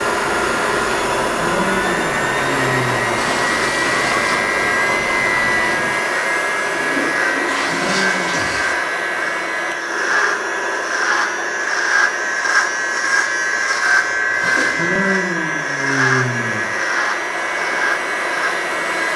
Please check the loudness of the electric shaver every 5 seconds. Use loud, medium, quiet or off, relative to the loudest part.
medium, medium, loud, loud.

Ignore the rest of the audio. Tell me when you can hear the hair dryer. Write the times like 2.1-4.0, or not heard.
0.0-19.1.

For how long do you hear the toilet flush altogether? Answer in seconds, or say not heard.
4 s.